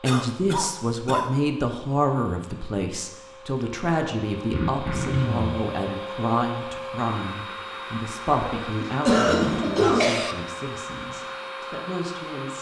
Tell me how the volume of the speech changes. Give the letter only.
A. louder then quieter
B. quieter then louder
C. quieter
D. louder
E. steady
C.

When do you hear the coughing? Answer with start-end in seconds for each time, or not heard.
0.1-1.3, 4.5-5.6, 8.7-10.3.